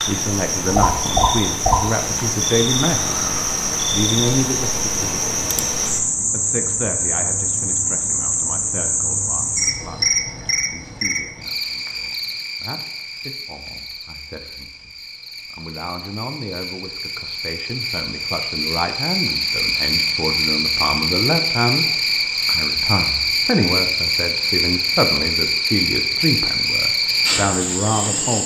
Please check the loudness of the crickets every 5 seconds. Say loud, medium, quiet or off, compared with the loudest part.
loud, loud, medium, medium, loud, loud.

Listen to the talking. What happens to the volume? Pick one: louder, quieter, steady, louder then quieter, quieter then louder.
quieter then louder.